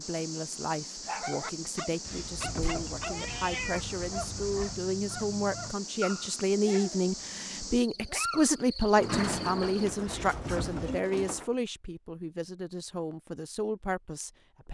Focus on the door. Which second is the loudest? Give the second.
9 s.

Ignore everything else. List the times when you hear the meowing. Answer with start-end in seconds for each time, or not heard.
2.0-4.8, 10.1-11.0.